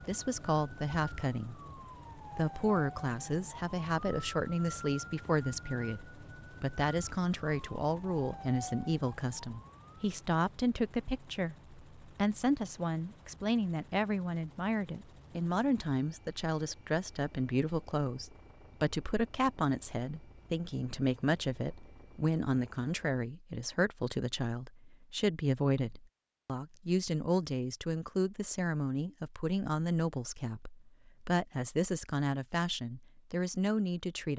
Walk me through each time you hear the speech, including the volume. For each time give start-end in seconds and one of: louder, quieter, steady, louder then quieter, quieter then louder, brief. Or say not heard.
0.1-1.6 brief
2.4-34.3 steady.